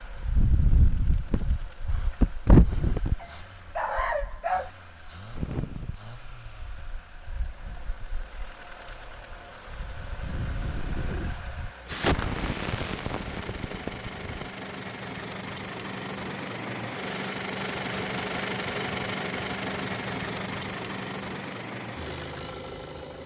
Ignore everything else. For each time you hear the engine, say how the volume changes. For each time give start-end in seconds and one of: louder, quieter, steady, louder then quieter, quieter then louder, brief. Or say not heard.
0.0-23.2 louder.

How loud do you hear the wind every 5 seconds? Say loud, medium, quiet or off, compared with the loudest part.
loud, quiet, medium, off, off.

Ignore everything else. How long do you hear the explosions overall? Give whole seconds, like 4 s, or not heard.
3 s.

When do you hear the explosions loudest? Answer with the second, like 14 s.
12 s.